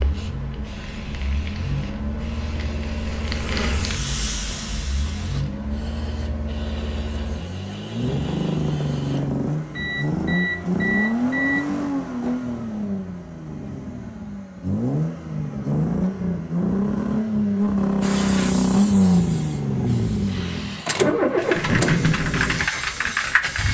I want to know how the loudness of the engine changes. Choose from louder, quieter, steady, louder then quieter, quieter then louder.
louder.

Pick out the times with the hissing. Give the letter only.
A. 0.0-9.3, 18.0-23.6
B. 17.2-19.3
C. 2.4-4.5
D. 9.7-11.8
A.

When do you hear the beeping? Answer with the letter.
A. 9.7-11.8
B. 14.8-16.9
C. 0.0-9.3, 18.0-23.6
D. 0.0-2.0
A.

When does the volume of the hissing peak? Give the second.
23 s.